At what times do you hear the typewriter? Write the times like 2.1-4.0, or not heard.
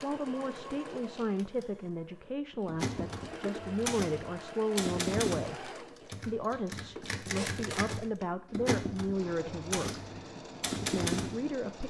2.6-11.8.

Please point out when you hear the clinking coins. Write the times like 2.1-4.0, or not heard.
not heard.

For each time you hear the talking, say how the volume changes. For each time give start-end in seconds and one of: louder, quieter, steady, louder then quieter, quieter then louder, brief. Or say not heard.
0.0-10.0 steady
10.9-11.8 brief.